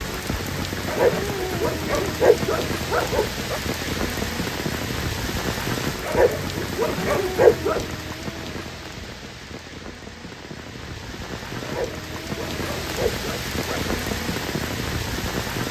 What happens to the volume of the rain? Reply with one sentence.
The volume of the rain goes down, then up.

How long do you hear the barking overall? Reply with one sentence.
The barking can be heard for 7 seconds in total.